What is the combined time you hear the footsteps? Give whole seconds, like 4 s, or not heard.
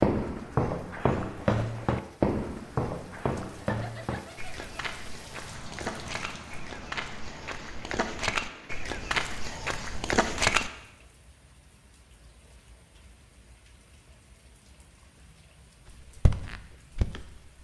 12 s.